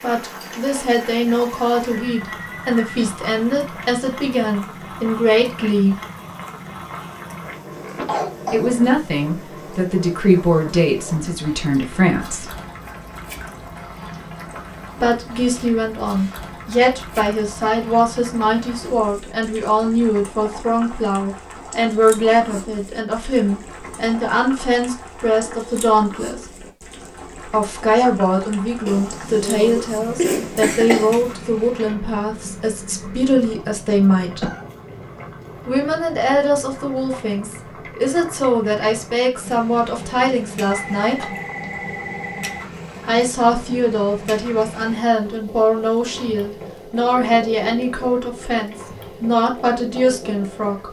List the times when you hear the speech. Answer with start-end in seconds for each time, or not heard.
0.0-6.0, 8.5-12.5, 15.0-26.4, 27.4-34.5, 35.6-41.2, 43.0-50.8.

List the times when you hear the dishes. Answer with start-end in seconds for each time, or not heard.
not heard.